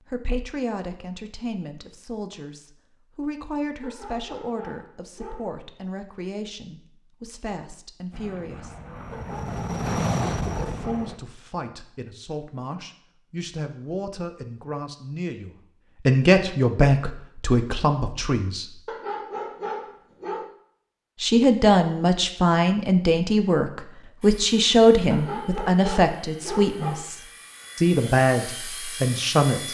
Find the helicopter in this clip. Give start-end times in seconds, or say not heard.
8.1-11.2, 24.2-29.6.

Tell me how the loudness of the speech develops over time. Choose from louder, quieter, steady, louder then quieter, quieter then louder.
louder.